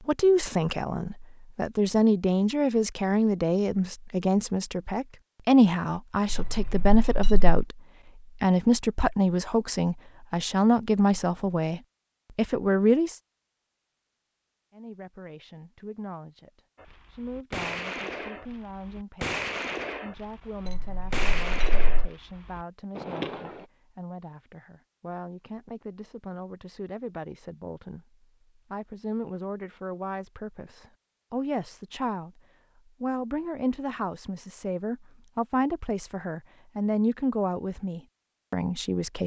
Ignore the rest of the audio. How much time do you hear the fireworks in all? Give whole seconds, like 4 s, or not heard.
7 s.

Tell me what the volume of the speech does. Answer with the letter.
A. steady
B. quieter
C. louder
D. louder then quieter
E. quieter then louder
E.